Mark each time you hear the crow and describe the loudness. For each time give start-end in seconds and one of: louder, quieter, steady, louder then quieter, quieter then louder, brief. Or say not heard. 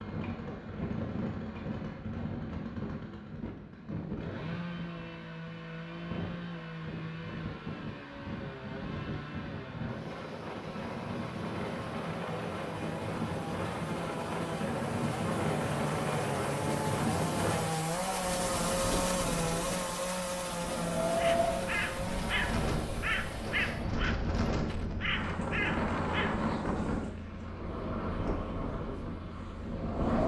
21.1-26.4 quieter then louder.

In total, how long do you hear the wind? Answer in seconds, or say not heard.
30 s.